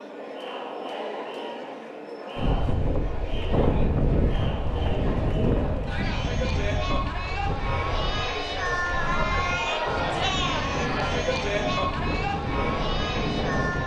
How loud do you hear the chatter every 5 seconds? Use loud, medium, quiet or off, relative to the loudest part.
medium, loud, loud.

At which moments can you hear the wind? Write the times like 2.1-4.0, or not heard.
2.4-13.8.